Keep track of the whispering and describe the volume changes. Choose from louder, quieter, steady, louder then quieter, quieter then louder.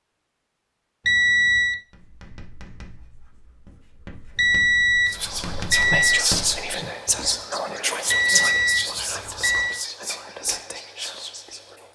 quieter.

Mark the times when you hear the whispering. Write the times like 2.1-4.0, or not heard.
5.0-11.9.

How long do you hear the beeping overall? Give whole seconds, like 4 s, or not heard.
4 s.